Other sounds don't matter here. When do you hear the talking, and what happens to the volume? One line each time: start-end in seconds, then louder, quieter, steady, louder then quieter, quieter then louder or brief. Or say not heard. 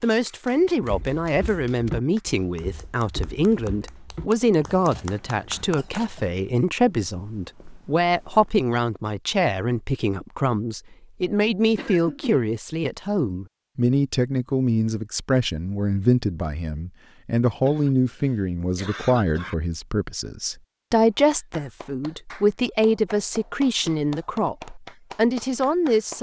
0.0-26.1 steady.